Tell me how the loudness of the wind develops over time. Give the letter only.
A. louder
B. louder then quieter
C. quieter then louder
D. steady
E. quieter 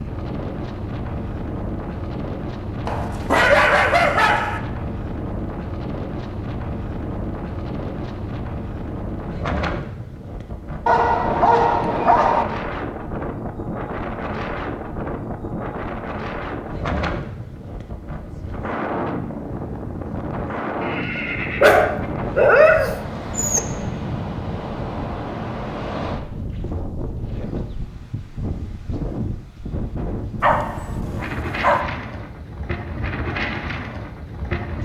D.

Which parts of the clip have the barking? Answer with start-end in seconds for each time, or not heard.
2.9-4.6, 10.8-12.4, 21.6-23.6, 30.4-31.9.